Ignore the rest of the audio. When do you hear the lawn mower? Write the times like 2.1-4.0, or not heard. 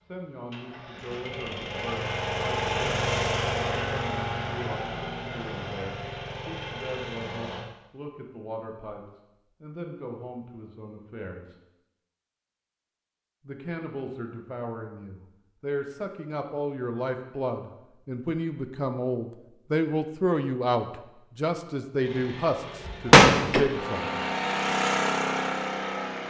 0.1-7.6, 22.0-26.2.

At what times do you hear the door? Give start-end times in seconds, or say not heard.
22.9-23.6.